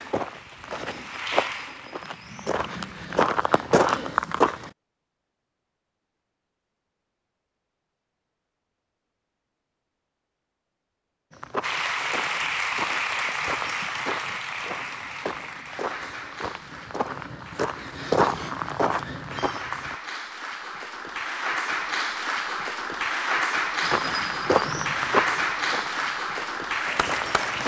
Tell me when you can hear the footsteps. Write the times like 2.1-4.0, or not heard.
0.0-4.7, 11.3-19.9, 23.8-27.6.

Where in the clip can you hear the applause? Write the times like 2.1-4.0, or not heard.
0.0-3.1, 11.6-27.6.